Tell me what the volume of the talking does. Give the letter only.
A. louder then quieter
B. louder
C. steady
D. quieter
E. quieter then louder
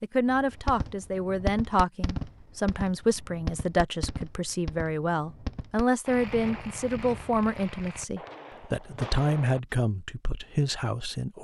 C.